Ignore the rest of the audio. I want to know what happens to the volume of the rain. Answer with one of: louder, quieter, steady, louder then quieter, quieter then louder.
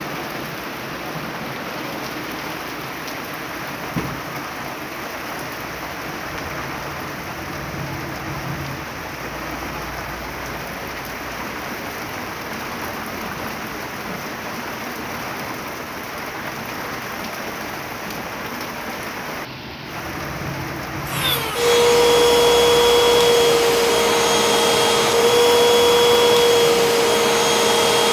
steady.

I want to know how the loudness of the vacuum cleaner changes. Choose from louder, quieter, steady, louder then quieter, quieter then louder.
steady.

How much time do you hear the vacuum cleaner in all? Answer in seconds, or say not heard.
7 s.